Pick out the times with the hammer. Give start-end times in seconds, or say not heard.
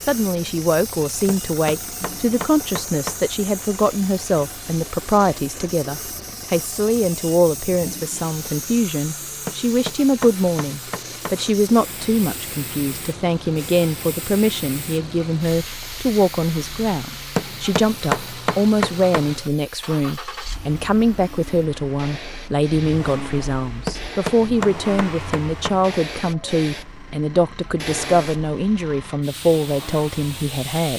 1.2-3.2, 9.4-11.4, 17.4-19.4, 23.9-25.9.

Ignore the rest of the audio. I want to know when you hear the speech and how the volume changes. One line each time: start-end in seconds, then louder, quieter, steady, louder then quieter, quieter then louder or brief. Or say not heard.
0.0-30.9 steady.